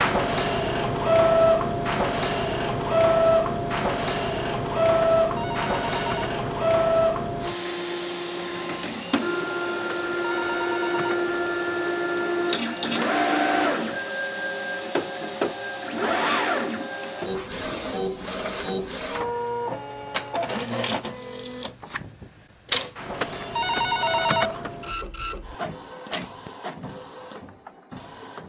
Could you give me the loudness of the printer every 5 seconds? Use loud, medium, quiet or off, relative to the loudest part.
loud, loud, loud, medium, medium, quiet.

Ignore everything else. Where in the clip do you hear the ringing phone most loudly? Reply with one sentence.
The volume of the ringing phone peaks at 24 seconds.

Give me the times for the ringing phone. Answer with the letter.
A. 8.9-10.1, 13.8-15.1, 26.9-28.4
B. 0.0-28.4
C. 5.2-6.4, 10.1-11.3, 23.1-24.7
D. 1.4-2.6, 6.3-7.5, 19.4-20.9
C.